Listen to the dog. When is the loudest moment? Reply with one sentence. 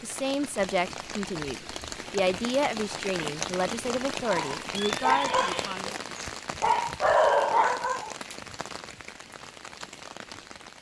The loudest moment of the dog is at 7 seconds.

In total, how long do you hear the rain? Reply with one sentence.
The rain can be heard for 11 seconds in total.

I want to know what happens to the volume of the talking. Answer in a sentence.
The loudness of the talking stays about the same.